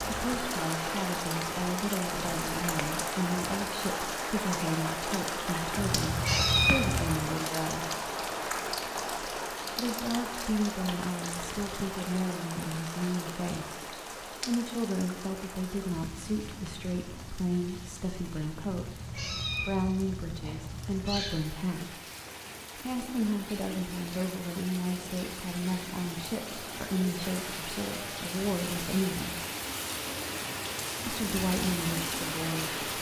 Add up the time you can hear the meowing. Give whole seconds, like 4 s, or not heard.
4 s.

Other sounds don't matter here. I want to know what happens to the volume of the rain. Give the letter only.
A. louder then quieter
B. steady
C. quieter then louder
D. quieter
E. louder
C.